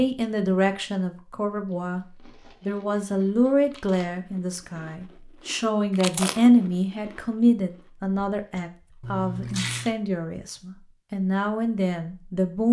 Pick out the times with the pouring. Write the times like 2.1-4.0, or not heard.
9.0-9.9.